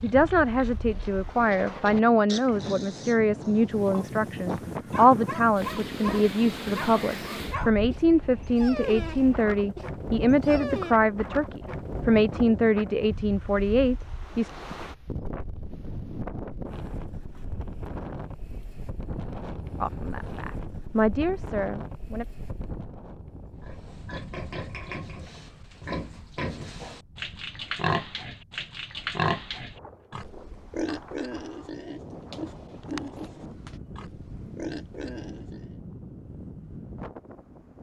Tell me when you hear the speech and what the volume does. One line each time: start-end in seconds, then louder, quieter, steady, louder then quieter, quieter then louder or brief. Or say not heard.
0.0-14.5 steady
19.8-22.2 brief.